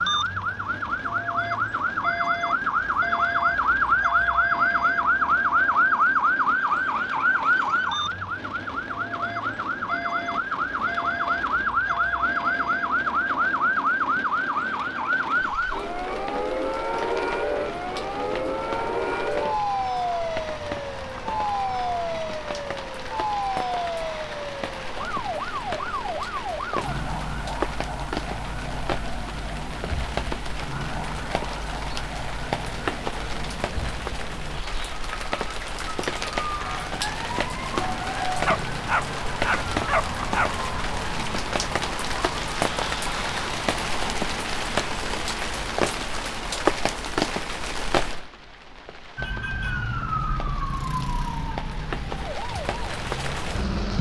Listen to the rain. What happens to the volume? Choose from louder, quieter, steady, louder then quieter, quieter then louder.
louder.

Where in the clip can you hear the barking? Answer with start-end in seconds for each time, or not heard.
38.5-40.5.